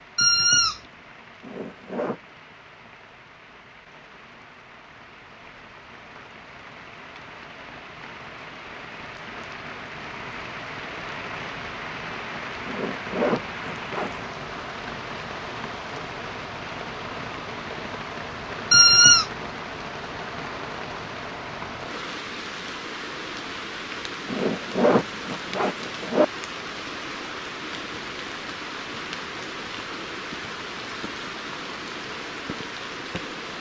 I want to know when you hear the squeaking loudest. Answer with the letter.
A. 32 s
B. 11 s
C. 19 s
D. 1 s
C.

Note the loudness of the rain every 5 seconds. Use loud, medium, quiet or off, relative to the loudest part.
quiet, medium, loud, loud, loud, loud, loud.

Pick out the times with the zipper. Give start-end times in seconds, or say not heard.
1.4-2.2, 12.7-14.2, 24.2-26.2.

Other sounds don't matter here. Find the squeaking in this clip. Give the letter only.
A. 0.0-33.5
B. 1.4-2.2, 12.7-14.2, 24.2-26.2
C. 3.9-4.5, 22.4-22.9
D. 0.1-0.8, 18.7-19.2
D.